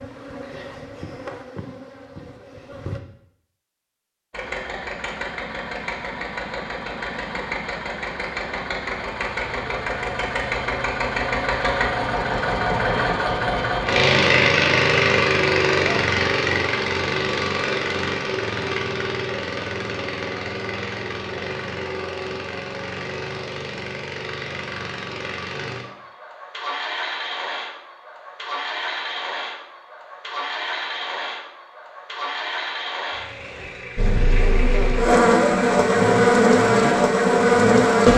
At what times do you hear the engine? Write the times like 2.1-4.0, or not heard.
4.3-38.0.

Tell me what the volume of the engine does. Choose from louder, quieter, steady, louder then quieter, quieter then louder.
louder then quieter.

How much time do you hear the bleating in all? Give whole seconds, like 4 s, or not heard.
not heard.